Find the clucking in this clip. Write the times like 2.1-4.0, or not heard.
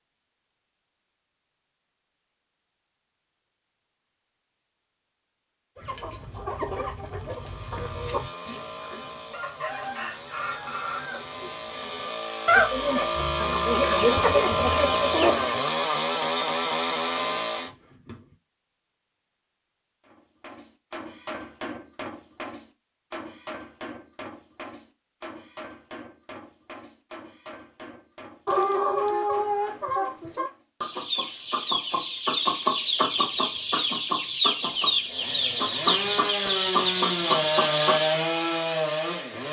5.8-15.6, 28.4-38.2.